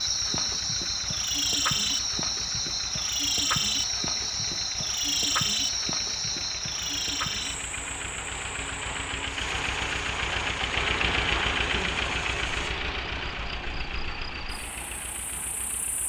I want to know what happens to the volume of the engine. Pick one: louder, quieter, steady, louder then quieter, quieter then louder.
louder then quieter.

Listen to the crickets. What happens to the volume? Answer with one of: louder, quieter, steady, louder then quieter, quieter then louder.
quieter.